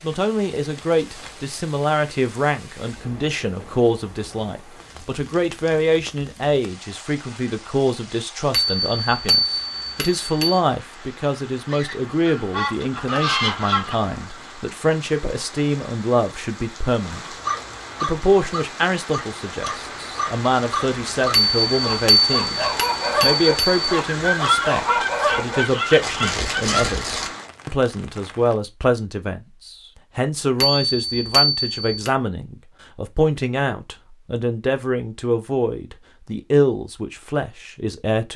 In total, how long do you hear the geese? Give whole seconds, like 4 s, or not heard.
5 s.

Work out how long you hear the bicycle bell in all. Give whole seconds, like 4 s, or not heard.
6 s.